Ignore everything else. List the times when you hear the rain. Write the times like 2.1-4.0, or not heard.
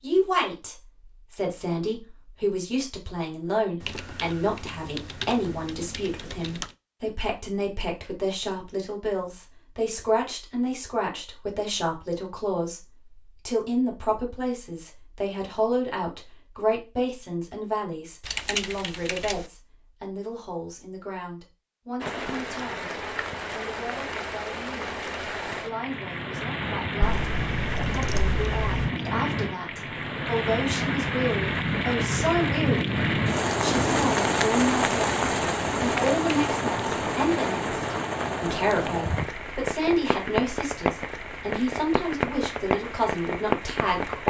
22.0-44.2.